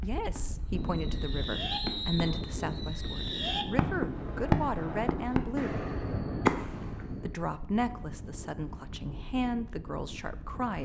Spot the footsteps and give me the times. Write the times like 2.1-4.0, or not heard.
not heard.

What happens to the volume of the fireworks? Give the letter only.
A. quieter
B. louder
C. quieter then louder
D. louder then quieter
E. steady
B.